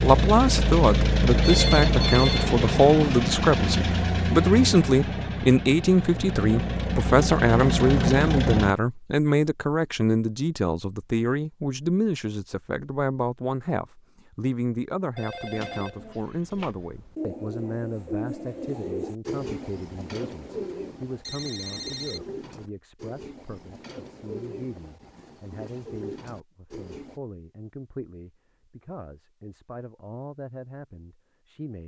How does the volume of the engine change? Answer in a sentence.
The loudness of the engine goes down, then up.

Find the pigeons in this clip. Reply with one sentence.
The pigeons can be heard from 15.5 to 27.2 s.